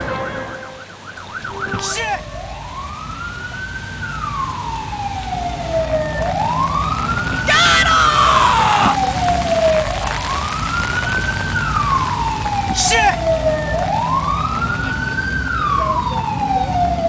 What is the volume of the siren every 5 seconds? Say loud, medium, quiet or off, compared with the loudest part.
medium, loud, loud, loud.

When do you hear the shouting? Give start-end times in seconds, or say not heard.
1.8-2.2, 7.5-8.9, 12.8-13.2.